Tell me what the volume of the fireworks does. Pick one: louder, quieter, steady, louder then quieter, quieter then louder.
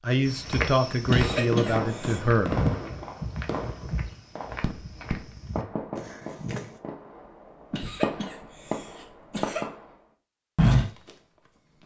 quieter then louder.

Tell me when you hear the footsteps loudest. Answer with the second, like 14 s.
11 s.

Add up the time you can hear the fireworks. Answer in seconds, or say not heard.
9 s.